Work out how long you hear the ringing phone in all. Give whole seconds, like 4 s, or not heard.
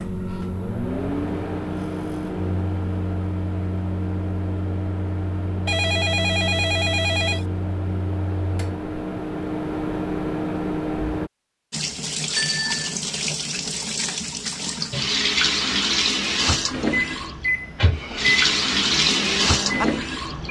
2 s.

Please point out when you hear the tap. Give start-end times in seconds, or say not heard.
11.7-20.4.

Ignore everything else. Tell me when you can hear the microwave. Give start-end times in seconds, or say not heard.
0.0-11.3, 16.2-20.4.